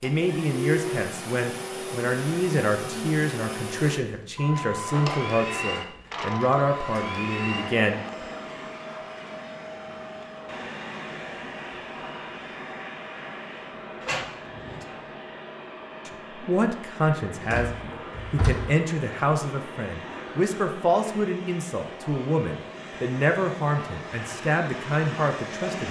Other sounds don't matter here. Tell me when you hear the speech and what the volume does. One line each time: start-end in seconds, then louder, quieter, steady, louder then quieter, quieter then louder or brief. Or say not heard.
0.0-8.0 steady
16.1-25.8 steady.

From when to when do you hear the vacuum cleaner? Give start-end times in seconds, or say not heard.
0.0-25.8.